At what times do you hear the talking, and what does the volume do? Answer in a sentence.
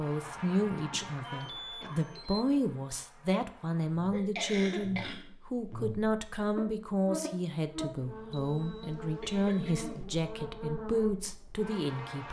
The talking can be heard from 0.0 to 12.2 s, at a steady volume.